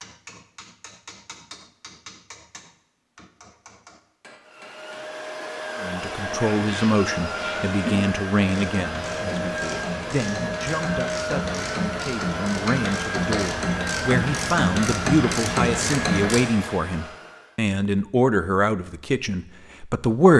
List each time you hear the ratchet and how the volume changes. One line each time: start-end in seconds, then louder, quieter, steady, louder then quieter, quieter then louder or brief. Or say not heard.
6.2-16.7 louder.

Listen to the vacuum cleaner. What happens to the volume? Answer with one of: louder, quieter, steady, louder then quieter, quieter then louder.
steady.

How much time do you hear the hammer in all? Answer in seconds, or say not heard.
5 s.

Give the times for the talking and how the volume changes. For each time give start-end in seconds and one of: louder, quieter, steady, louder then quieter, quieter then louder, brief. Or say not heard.
5.8-20.3 quieter then louder.